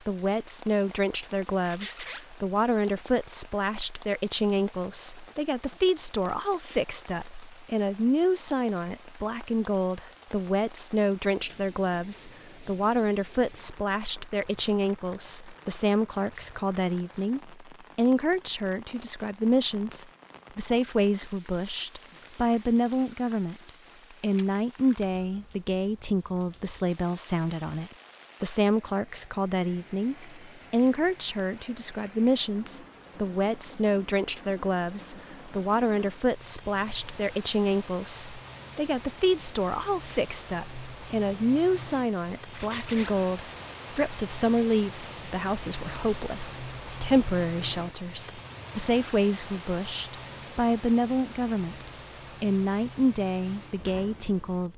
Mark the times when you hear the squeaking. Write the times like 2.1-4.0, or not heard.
1.6-2.2, 42.5-43.1.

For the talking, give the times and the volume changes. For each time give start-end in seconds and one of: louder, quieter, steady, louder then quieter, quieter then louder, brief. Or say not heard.
0.1-54.7 steady.